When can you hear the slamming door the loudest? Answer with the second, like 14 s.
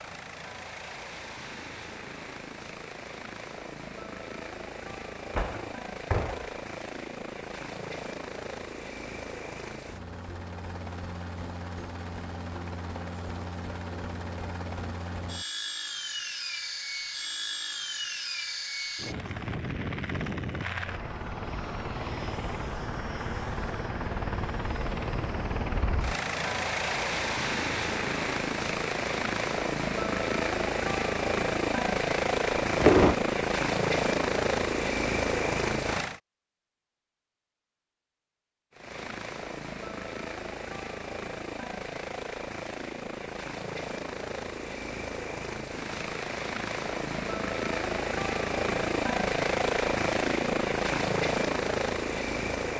33 s.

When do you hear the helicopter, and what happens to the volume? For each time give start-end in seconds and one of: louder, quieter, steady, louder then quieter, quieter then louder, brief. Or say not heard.
0.0-36.2 louder
38.7-52.7 louder.